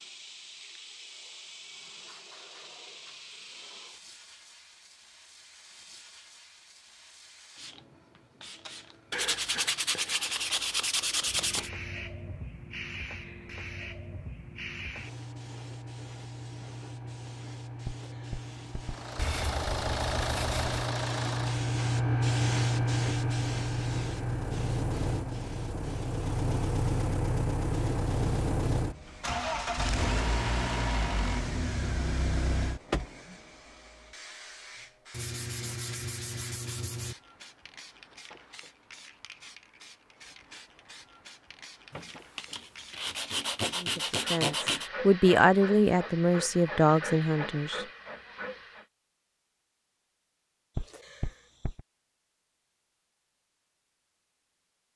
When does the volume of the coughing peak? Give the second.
51 s.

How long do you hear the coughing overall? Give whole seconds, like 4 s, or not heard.
2 s.